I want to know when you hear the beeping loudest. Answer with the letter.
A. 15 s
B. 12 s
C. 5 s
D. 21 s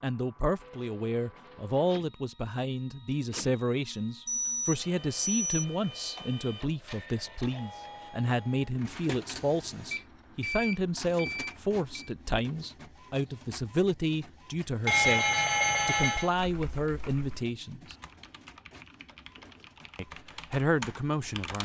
A.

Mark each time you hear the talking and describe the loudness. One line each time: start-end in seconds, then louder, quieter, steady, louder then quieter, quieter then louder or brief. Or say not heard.
0.0-17.9 steady
19.9-21.5 brief.